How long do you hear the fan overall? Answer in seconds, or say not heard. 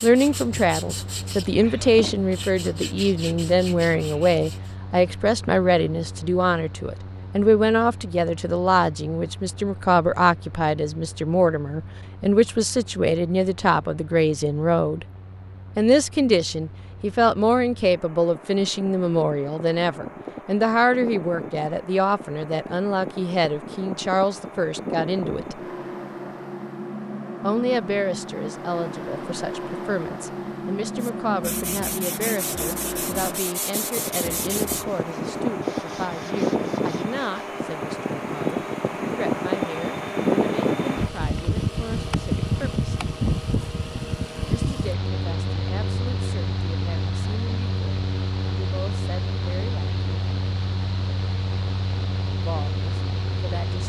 54 s.